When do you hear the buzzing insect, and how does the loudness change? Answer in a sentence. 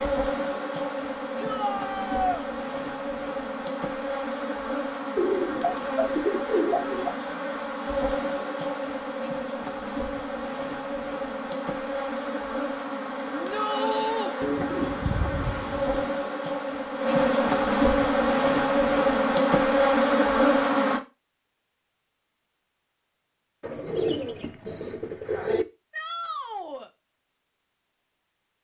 You can hear the buzzing insect from 0.0 to 21.0 s, getting louder.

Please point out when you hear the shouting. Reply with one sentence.
You can hear the shouting from 1.4 to 2.5 s, from 13.3 to 14.3 s and from 25.9 to 26.9 s.